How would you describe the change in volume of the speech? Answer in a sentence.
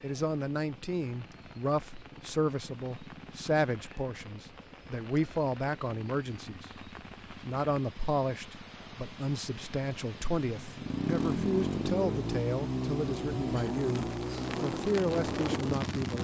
The volume of the speech stays about the same.